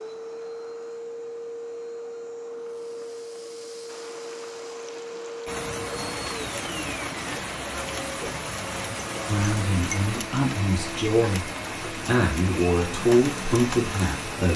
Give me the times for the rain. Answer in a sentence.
The rain can be heard from 3.9 to 14.5 s.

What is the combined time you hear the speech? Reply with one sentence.
You can hear the speech for 5 seconds altogether.